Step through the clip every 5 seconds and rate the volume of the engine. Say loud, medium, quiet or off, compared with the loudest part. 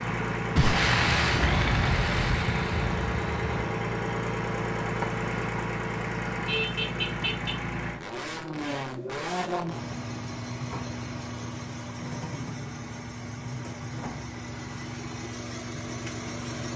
loud, loud, medium, medium.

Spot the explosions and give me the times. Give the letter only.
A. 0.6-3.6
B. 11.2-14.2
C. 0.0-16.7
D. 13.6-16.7
A.